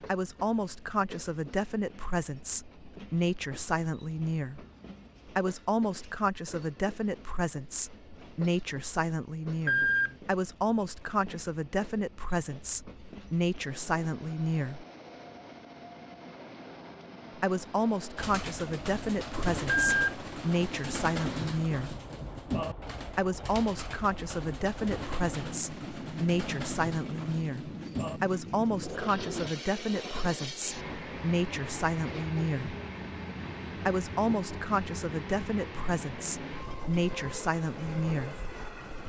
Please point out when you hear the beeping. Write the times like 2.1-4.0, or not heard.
9.7-10.2, 19.6-20.1.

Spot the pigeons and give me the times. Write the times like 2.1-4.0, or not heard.
18.1-29.6.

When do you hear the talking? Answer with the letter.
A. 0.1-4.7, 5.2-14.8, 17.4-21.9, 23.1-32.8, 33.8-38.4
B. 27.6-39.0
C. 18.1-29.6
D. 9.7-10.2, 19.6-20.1
A.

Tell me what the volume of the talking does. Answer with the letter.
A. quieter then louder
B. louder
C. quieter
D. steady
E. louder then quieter
D.